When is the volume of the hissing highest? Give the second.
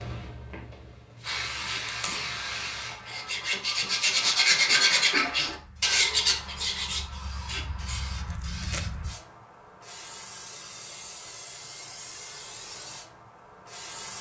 2 s.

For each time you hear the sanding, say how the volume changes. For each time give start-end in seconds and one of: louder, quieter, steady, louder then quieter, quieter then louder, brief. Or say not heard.
1.6-8.3 louder then quieter.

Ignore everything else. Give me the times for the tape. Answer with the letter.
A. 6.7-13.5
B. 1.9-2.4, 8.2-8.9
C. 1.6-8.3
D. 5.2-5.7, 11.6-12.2
B.